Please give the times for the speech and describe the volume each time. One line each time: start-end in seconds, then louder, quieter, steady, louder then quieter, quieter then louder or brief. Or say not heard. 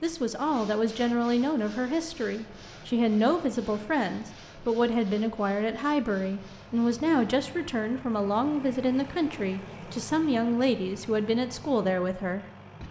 0.0-12.4 steady.